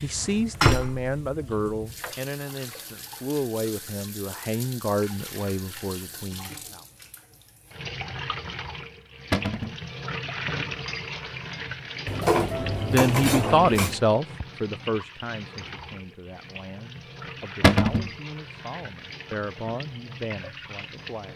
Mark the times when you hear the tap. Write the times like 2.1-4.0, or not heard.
0.0-21.3.